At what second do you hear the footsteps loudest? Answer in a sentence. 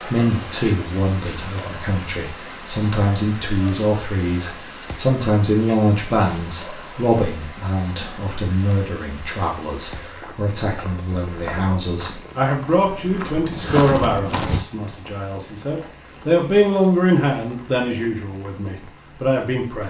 The loudest moment of the footsteps is at 14 seconds.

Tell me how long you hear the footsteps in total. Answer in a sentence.
The footsteps can be heard for 5 seconds in total.